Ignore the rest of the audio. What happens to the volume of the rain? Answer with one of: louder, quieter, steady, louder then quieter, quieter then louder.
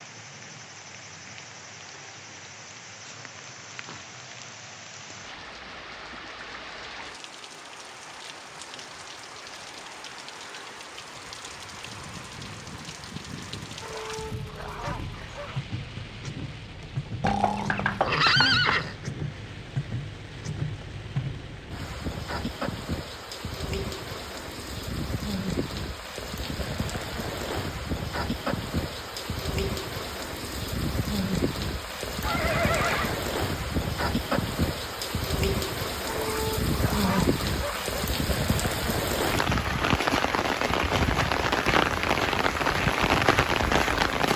louder.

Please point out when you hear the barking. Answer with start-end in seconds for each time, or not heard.
13.8-15.7, 36.0-38.1.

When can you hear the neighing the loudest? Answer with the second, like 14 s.
18 s.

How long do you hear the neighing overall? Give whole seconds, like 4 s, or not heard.
3 s.